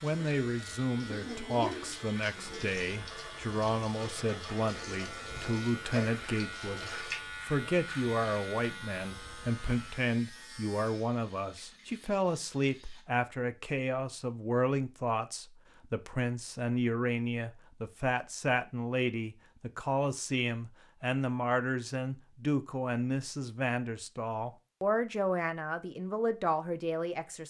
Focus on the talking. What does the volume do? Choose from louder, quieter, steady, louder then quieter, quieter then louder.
steady.